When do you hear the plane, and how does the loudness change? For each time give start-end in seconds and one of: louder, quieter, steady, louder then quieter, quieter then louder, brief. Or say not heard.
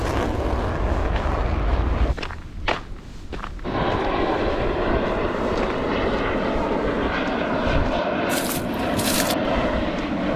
0.0-2.1 brief
3.6-10.3 steady.